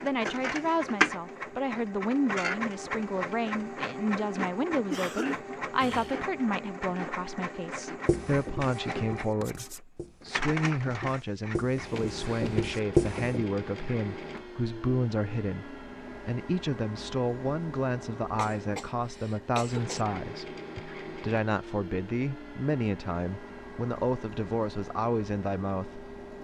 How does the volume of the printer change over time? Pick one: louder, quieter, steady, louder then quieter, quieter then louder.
quieter.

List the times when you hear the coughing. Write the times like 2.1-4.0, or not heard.
4.9-6.3, 18.4-20.1.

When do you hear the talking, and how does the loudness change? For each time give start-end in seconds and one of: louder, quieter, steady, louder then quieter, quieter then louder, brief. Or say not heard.
0.0-26.1 steady.